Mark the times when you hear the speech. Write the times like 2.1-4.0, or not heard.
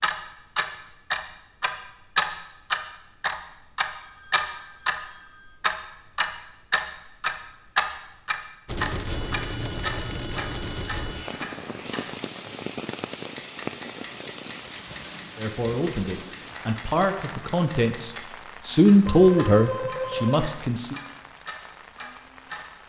15.3-21.0.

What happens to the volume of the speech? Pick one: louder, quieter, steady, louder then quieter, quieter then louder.
louder then quieter.